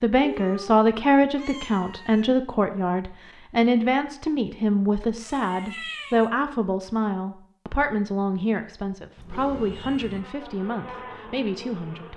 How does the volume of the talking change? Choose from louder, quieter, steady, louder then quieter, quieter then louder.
quieter.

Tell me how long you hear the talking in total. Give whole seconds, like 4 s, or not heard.
12 s.